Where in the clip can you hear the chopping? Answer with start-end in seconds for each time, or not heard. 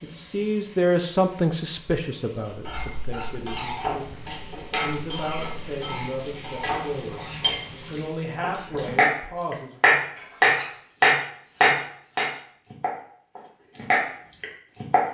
8.4-15.0.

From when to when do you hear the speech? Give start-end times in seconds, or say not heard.
0.0-7.2, 7.9-9.8.